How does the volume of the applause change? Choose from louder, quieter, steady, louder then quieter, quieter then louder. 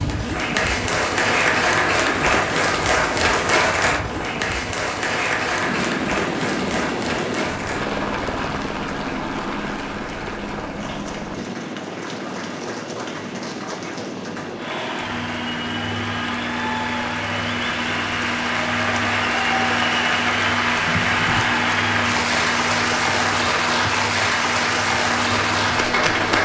quieter then louder.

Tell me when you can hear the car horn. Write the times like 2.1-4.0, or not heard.
not heard.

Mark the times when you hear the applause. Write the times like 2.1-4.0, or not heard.
0.0-26.4.